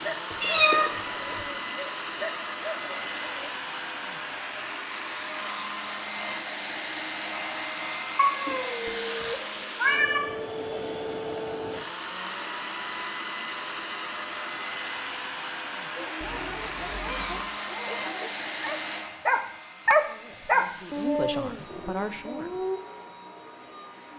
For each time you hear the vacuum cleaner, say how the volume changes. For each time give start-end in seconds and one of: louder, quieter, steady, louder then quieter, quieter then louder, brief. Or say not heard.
0.0-24.1 quieter.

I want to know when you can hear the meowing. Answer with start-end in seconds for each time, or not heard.
0.3-1.4, 8.2-10.2, 16.2-17.5.